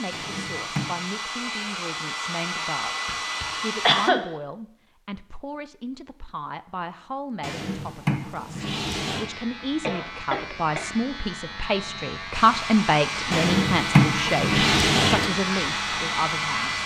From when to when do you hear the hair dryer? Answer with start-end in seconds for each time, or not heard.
0.0-4.1, 12.3-16.8.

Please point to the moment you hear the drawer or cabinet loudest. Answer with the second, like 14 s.
14 s.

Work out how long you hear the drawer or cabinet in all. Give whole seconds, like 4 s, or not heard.
5 s.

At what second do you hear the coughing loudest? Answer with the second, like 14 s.
4 s.